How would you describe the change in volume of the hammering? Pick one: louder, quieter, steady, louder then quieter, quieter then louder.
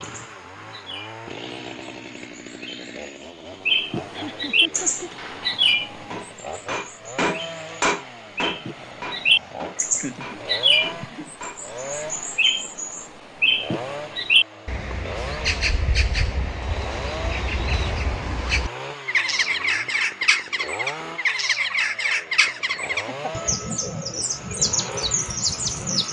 louder then quieter.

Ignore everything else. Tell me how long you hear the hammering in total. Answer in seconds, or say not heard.
7 s.